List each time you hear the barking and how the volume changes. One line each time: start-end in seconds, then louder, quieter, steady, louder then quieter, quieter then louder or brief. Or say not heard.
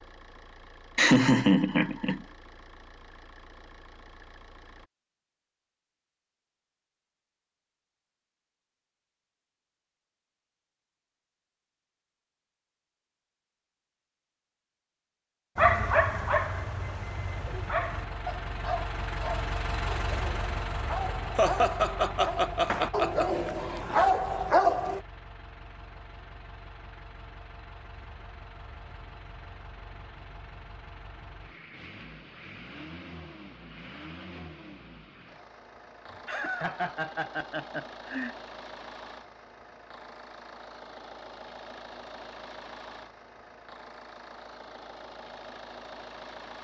15.6-25.0 quieter then louder.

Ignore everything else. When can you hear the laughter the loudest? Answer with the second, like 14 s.
1 s.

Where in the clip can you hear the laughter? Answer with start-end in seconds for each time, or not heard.
0.9-2.2, 21.4-23.6, 36.1-38.4.